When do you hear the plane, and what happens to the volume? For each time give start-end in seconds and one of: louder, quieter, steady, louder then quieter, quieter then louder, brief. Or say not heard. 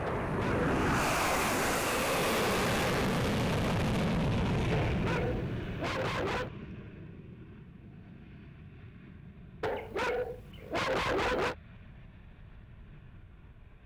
0.0-13.8 quieter.